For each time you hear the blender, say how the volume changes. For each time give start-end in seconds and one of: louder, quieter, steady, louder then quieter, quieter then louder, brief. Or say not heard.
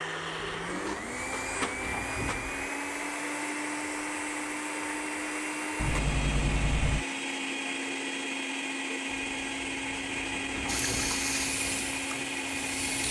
0.0-13.0 steady.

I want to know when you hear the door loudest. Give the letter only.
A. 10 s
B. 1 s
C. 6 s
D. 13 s
C.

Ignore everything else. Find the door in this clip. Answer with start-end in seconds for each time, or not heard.
0.3-2.7, 5.8-7.0, 9.1-11.2.